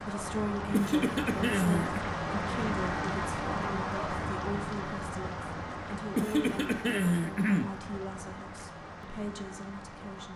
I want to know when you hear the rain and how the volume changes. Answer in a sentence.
You can hear the rain from 0.0 to 10.3 s, getting quieter.